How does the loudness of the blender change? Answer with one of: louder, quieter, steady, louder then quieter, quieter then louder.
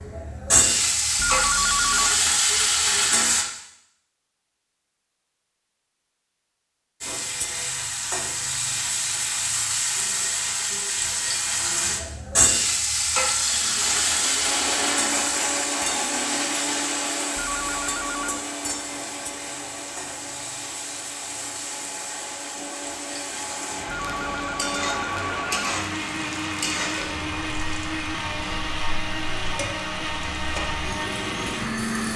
quieter then louder.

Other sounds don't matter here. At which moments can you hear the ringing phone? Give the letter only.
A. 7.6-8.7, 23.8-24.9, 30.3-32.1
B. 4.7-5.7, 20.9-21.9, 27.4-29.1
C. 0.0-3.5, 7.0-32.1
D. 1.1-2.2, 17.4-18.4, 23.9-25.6
D.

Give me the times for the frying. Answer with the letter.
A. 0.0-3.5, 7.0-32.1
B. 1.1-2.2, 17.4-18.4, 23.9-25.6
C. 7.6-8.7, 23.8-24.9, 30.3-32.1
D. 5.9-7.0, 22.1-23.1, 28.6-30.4
A.